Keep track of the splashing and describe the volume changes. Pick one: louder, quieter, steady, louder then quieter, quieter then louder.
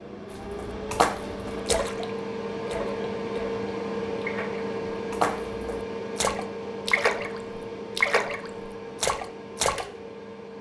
quieter then louder.